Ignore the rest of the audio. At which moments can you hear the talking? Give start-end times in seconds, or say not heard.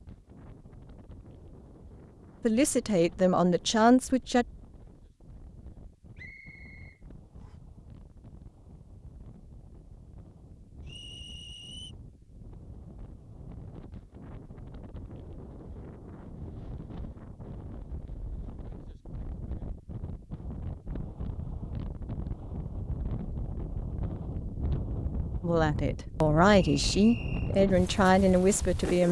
2.4-4.5, 25.4-29.0.